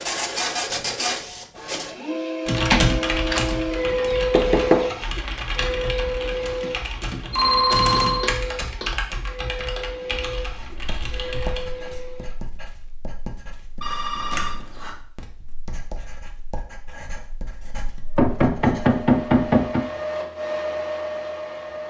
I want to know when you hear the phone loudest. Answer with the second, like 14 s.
8 s.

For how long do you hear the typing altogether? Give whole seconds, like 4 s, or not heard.
9 s.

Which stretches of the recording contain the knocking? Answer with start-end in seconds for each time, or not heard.
4.3-4.9, 7.8-8.9, 18.1-19.9.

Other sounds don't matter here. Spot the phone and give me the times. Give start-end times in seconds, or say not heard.
7.3-8.3, 13.8-14.9.